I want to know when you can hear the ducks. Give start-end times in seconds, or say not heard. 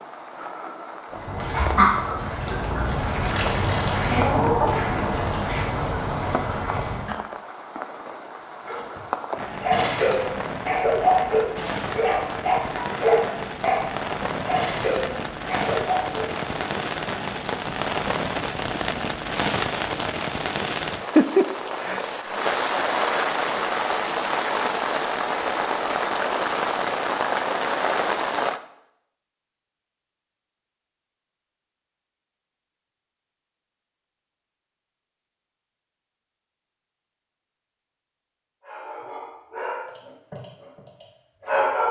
1.1-7.2.